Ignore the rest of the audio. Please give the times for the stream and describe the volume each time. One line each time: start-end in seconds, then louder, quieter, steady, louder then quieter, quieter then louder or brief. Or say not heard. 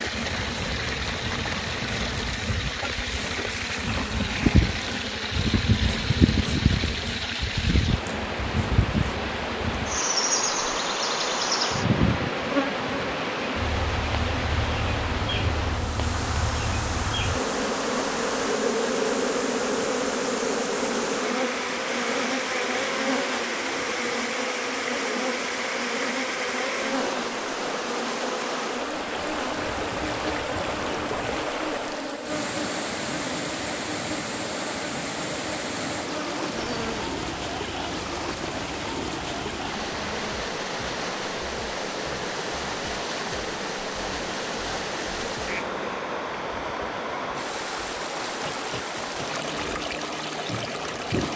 0.0-51.3 steady.